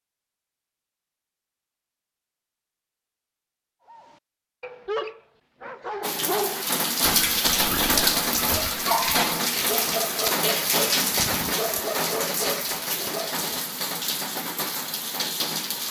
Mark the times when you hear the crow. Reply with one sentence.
You can't hear the crow here.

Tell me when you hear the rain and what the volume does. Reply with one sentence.
You can hear the rain from 6.0 to 15.8 s, getting quieter.